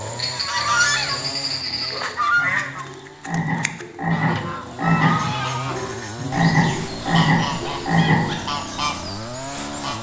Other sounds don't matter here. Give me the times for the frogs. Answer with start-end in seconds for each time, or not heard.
0.0-8.3.